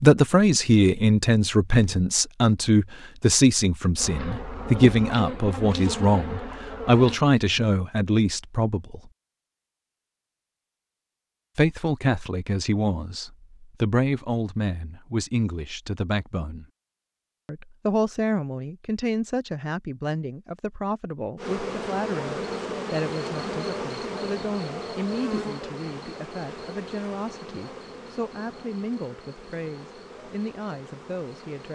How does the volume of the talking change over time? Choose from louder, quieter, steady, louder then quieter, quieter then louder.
quieter.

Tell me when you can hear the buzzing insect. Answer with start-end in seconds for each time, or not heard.
4.0-7.2, 21.4-31.7.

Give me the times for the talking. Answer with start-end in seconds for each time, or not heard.
0.0-9.0, 11.6-16.6, 17.4-31.7.